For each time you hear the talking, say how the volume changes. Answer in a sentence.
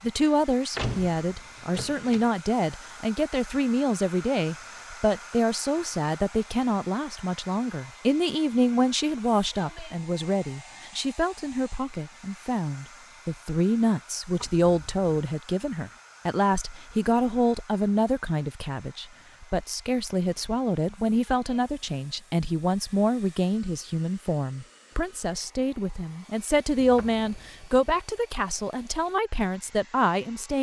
The talking can be heard from 0.0 to 30.5 s, at a steady volume.